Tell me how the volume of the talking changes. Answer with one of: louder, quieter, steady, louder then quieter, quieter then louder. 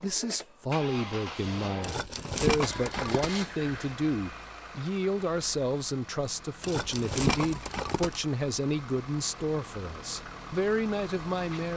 steady.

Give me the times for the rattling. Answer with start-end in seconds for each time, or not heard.
1.8-3.4, 6.6-8.2.